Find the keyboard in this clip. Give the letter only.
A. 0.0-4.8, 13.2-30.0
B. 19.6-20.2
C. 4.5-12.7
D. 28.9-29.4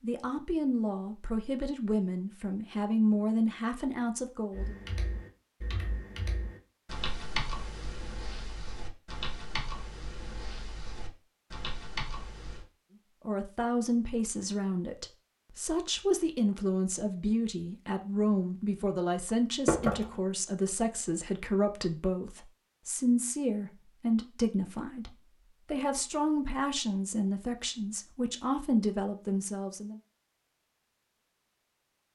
C.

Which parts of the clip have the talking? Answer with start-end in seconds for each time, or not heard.
0.0-4.8, 13.2-30.0.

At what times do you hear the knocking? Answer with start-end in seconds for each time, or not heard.
19.6-20.2.